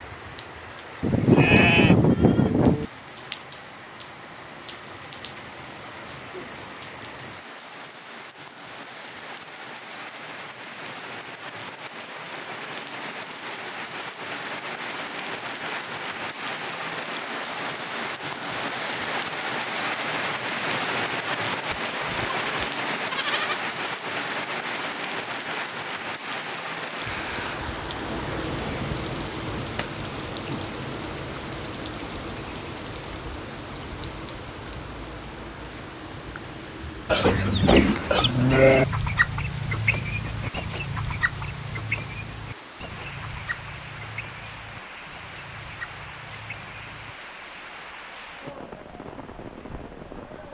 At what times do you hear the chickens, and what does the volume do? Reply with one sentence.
You can hear the chickens from 37.1 to 47.1 s, getting quieter.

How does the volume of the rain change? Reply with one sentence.
The loudness of the rain goes up, then down.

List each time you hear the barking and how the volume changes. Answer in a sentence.
You can't hear the barking here.